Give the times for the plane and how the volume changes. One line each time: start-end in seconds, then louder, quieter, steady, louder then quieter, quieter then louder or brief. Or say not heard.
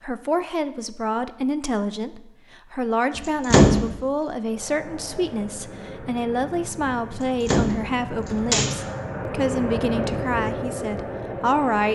4.4-11.8 louder.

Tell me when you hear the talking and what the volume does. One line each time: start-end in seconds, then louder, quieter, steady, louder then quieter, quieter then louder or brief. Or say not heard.
0.0-11.8 steady.